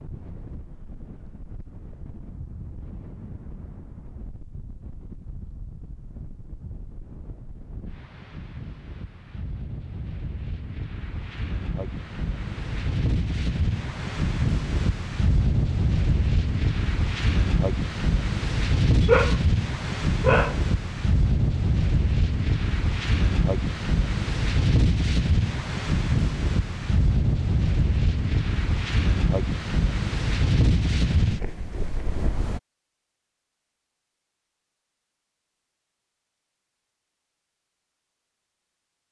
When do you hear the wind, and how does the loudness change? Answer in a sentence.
The wind can be heard from 0.0 to 32.6 s, getting louder.